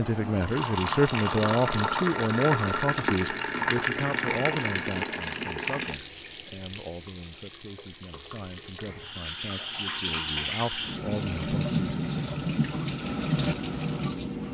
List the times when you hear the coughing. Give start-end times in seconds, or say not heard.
not heard.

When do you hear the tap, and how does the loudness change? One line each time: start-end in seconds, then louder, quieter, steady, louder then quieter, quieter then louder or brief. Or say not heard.
0.0-14.4 quieter then louder.